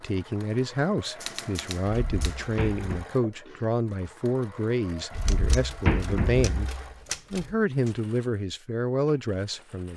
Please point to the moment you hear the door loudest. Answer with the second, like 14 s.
6 s.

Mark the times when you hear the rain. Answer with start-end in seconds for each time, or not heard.
not heard.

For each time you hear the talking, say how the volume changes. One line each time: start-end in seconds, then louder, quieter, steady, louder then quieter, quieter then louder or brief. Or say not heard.
0.0-9.9 steady.